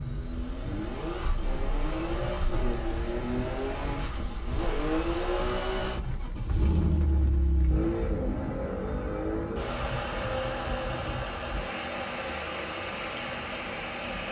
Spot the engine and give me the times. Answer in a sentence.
The engine can be heard from 0.0 to 14.2 s.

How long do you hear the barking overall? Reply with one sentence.
You can't hear the barking here.